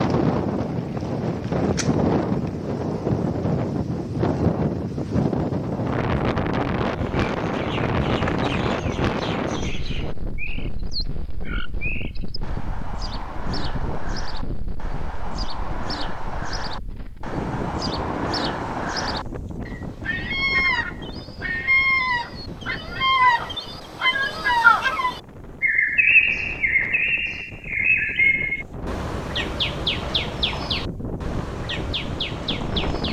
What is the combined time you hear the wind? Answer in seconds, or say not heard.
33 s.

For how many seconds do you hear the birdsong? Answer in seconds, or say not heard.
26 s.